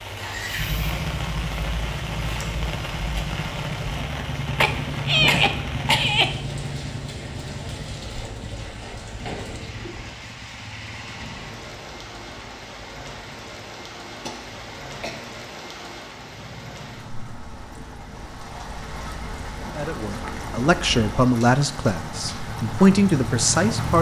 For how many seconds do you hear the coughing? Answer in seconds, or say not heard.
3 s.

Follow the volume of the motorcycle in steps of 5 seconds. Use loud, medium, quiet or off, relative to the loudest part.
loud, loud, quiet, medium, loud.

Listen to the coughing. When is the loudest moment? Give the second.
5 s.